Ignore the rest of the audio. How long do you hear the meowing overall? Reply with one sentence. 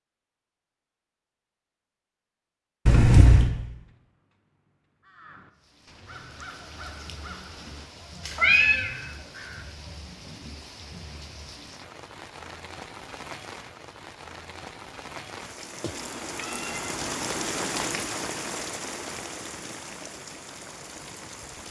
The meowing can be heard for 3 seconds in total.